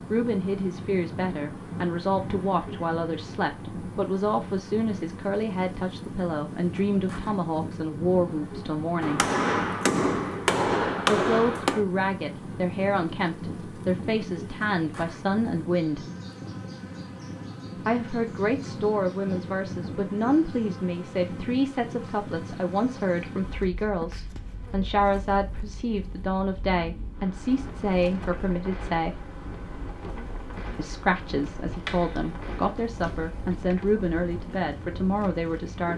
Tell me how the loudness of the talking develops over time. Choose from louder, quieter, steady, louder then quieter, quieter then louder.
steady.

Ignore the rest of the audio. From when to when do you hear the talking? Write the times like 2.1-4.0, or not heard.
0.1-9.3, 11.1-16.1, 17.9-29.3, 30.8-35.9.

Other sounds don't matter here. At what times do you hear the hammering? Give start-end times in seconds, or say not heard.
9.0-11.8, 31.9-33.8.